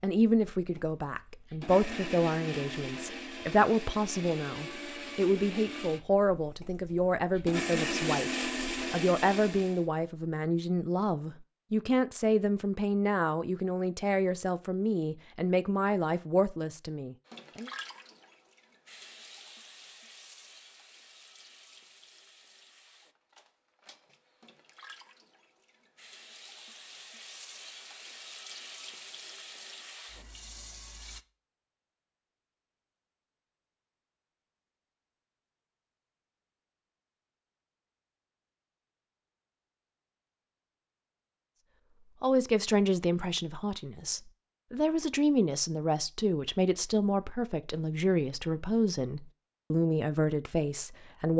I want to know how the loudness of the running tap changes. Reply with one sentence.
The volume of the running tap goes down, then up.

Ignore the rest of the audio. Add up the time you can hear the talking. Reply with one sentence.
You can hear the talking for 27 seconds altogether.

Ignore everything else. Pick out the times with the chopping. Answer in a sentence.
The chopping can't be heard in this clip.